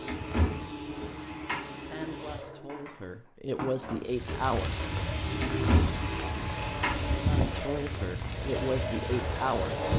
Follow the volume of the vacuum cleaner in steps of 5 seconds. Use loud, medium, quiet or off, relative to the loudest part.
medium, loud.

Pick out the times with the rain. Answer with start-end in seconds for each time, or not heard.
4.0-9.9.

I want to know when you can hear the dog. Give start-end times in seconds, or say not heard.
not heard.